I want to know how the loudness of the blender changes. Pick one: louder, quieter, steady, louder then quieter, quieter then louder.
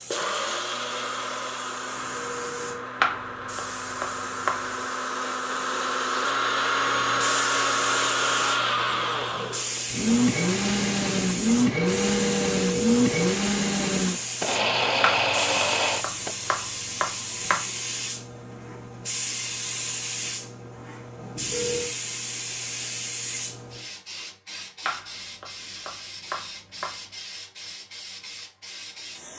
louder.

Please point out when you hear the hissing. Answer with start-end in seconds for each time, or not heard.
0.0-29.3.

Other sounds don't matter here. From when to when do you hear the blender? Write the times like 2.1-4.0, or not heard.
0.1-16.4.